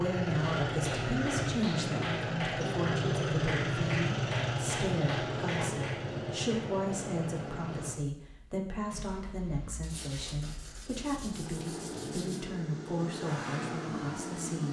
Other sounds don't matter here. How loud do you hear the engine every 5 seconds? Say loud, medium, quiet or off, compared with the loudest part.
loud, medium, medium.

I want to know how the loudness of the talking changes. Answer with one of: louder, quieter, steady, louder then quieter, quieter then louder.
steady.